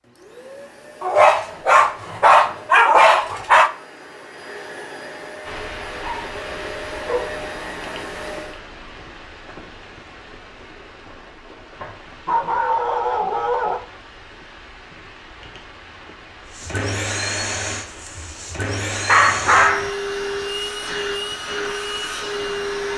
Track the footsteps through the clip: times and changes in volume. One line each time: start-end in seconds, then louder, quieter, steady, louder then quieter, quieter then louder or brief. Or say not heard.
not heard.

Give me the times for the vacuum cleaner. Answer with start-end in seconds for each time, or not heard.
0.0-8.6, 16.5-22.9.